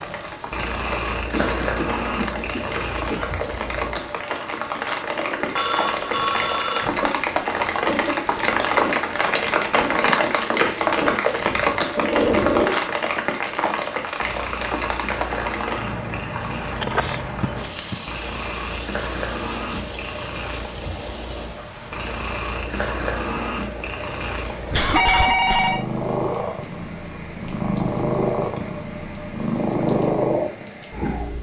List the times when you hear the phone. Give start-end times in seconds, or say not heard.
5.5-6.9, 16.8-17.9, 24.9-25.9.